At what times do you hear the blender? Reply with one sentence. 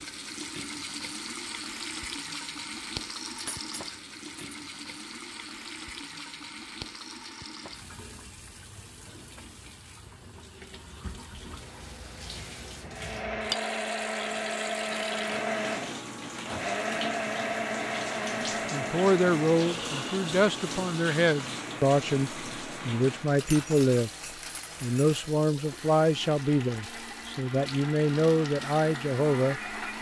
The blender can be heard from 12.8 to 29.9 s.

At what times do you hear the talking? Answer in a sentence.
The talking can be heard from 18.7 to 24.1 s and from 24.8 to 29.6 s.